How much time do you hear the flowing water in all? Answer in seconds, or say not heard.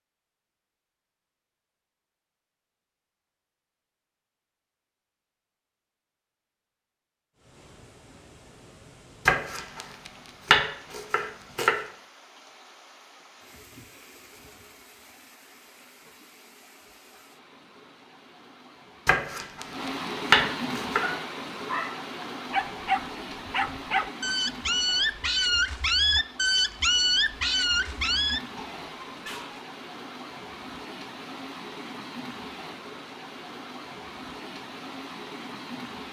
29 s.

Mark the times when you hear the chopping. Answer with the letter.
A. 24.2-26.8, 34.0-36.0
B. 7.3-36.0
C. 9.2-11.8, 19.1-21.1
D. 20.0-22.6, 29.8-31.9
C.